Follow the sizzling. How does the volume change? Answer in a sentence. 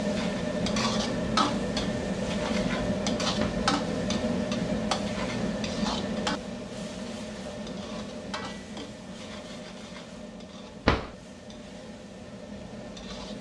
The volume of the sizzling goes down.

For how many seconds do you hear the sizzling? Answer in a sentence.
You can hear the sizzling for 13 seconds altogether.